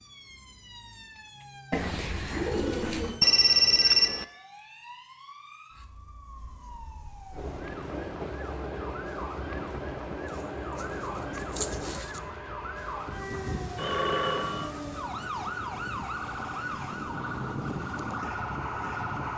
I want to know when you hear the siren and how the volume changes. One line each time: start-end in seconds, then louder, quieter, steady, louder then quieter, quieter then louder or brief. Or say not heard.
0.0-19.3 louder.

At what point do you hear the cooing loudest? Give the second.
3 s.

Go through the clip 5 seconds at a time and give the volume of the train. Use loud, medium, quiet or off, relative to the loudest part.
off, loud, loud, medium.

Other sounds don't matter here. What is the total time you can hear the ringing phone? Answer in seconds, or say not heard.
2 s.